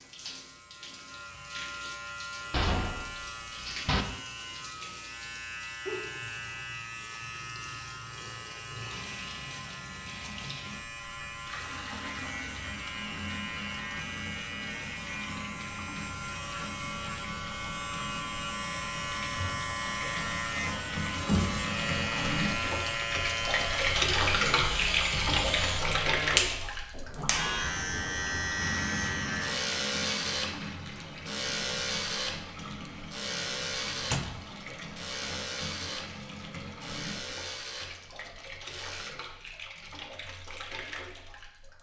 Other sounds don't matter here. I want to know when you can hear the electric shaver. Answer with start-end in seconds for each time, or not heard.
0.0-39.1.